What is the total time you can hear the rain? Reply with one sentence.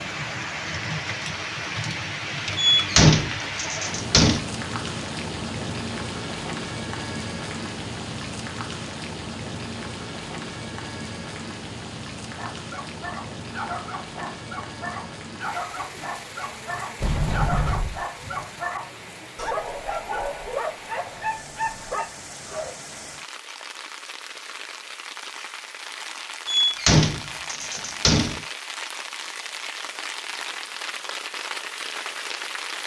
You can hear the rain for 33 seconds altogether.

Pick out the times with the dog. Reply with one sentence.
The dog can be heard from 12.2 to 22.8 s.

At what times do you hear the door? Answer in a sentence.
The door can be heard from 2.5 to 4.4 s, from 17.0 to 18.1 s and from 26.4 to 28.4 s.